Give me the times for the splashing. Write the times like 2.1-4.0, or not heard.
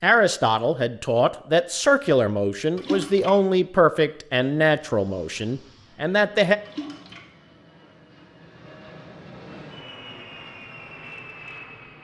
2.8-3.4, 6.7-7.2.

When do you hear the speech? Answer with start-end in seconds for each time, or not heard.
0.0-6.5.